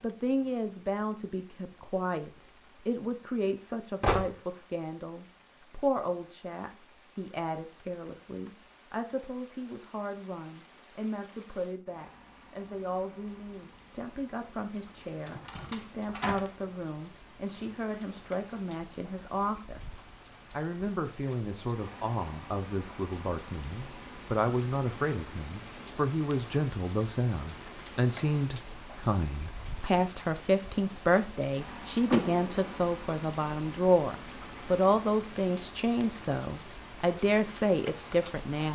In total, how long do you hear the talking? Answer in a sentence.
You can hear the talking for 39 seconds altogether.